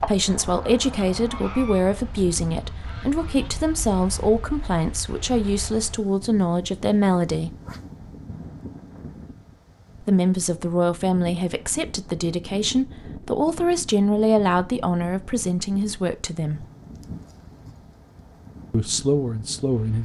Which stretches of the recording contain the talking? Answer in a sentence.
The talking can be heard from 0.0 to 7.5 s, from 10.0 to 16.6 s and from 18.7 to 20.0 s.